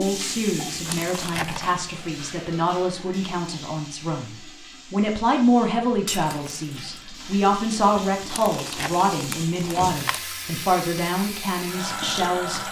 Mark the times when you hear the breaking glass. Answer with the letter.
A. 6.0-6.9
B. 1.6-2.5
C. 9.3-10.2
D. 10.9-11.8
A.